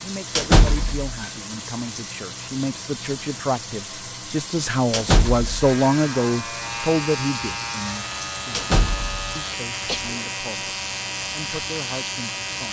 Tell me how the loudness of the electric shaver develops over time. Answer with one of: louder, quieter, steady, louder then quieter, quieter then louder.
steady.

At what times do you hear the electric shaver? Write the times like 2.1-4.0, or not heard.
5.5-12.6.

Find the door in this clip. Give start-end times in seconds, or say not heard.
0.3-1.1, 4.9-5.7, 8.5-9.3.